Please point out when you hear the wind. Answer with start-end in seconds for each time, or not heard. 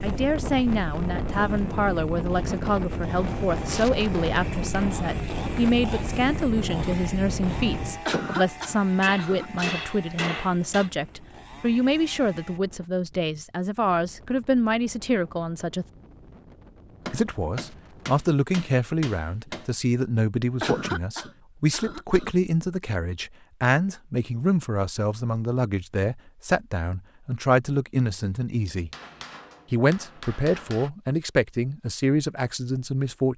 0.0-18.4.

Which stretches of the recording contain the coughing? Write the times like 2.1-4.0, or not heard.
8.1-9.8, 20.6-22.3.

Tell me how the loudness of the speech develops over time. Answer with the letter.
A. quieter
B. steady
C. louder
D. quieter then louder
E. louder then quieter
B.